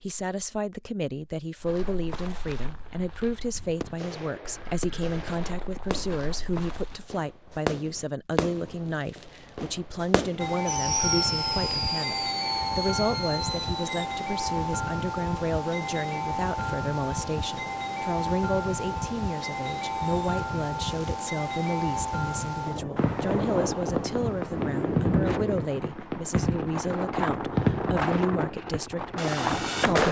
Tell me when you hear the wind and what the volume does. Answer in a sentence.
The wind can be heard from 10.3 to 30.0 s, at a steady volume.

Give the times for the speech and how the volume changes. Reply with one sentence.
The speech can be heard from 0.0 to 30.0 s, at a steady volume.